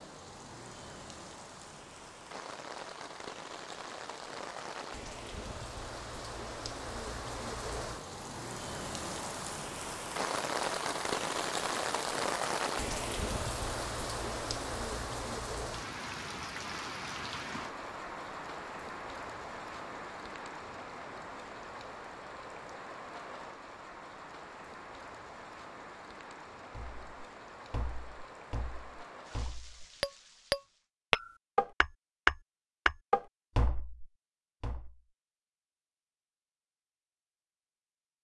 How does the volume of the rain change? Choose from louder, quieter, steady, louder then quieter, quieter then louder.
louder then quieter.